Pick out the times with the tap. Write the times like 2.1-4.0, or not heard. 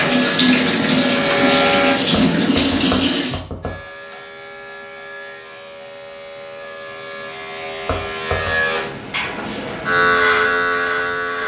0.0-3.5.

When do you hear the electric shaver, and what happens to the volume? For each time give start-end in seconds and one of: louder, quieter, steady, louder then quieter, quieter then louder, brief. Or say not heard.
0.0-1.9 brief
3.6-11.4 louder.